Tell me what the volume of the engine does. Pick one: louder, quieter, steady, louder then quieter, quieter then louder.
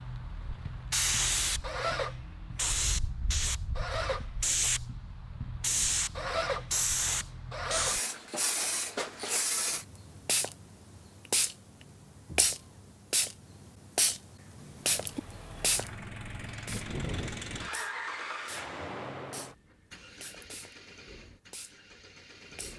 louder then quieter.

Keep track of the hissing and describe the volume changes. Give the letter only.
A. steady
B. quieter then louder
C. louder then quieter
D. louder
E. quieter
E.